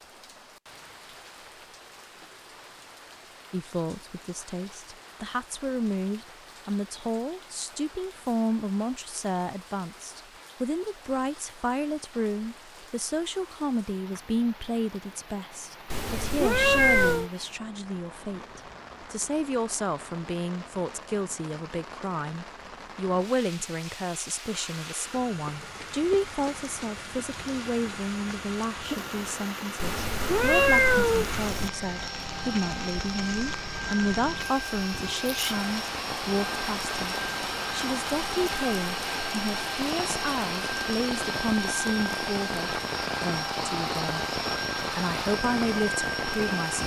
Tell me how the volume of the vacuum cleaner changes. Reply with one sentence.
The volume of the vacuum cleaner goes up.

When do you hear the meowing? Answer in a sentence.
You can hear the meowing from 15.9 to 17.3 s and from 29.8 to 31.7 s.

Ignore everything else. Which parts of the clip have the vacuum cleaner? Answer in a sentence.
The vacuum cleaner can be heard from 24.4 to 46.8 s.